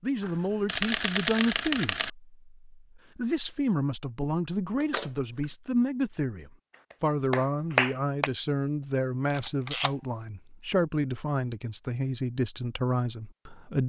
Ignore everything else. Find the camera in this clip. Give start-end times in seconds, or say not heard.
0.2-2.1, 4.8-5.5, 9.3-9.9.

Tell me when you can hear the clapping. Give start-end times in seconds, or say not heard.
6.7-8.3.